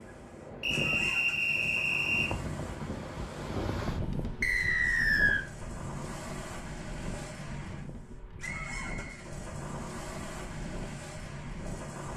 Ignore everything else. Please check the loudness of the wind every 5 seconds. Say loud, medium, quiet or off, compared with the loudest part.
loud, medium, medium.